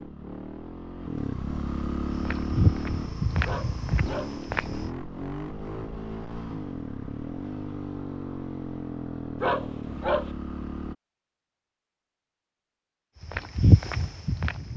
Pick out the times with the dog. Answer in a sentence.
You can hear the dog from 3.5 to 4.3 s and from 9.4 to 10.3 s.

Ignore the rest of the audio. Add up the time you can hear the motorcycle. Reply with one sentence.
The motorcycle can be heard for 11 seconds in total.